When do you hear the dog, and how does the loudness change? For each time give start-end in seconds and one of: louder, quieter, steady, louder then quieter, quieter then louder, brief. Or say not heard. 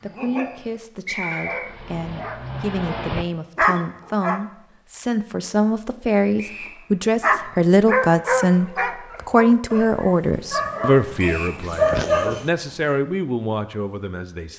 0.0-4.4 louder
7.2-12.5 quieter then louder.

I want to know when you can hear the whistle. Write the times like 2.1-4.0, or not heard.
1.1-1.7, 6.3-6.8, 11.2-11.6.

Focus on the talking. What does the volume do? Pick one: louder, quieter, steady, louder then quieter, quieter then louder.
louder then quieter.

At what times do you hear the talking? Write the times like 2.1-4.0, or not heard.
0.0-14.5.